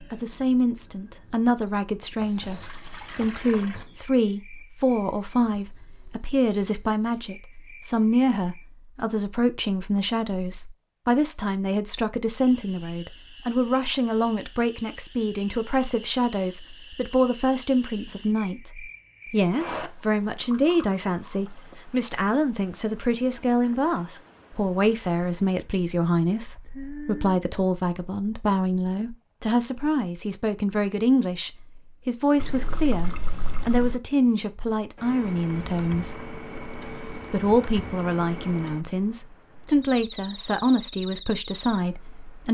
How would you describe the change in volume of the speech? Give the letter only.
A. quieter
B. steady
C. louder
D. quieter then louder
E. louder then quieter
B.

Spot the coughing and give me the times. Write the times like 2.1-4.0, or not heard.
not heard.